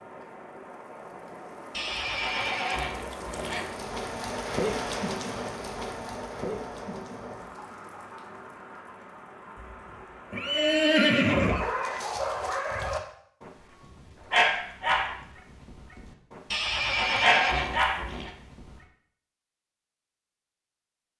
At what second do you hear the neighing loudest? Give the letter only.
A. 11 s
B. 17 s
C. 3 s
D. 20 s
A.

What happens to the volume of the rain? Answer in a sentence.
The volume of the rain goes up, then down.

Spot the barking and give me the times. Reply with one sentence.
The barking can be heard from 11.2 to 18.8 s.